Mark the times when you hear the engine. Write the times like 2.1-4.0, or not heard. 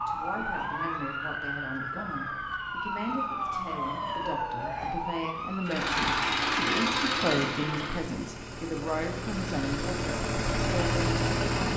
5.6-11.7.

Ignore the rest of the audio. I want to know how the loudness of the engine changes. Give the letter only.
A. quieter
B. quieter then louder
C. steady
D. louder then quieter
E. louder
B.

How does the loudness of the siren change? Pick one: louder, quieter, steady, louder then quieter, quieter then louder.
steady.